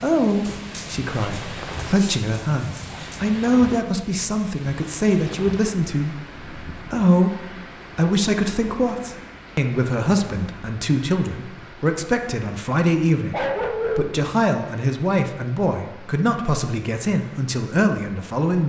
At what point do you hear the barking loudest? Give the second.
14 s.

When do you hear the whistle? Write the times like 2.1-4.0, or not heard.
not heard.